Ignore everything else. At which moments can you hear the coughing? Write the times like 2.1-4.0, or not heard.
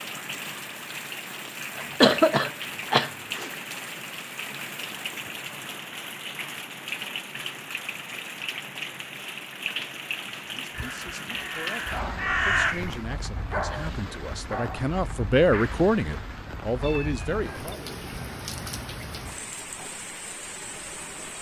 1.8-3.5.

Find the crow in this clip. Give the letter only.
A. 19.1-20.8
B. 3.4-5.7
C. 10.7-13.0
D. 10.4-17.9
C.